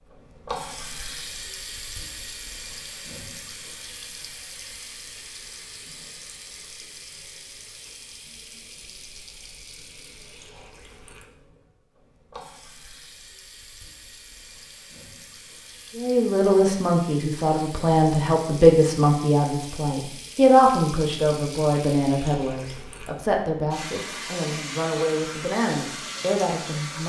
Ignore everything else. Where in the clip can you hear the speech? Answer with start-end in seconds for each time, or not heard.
15.9-27.0.